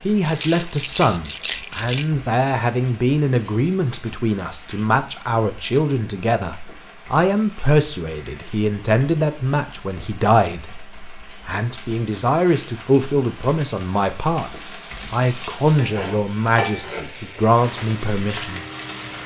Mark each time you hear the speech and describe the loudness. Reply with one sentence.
You can hear the speech from 0.0 to 18.6 s, at a steady volume.